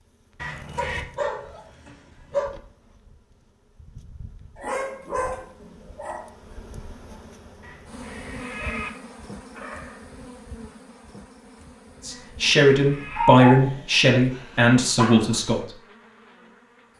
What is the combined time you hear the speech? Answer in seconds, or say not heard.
4 s.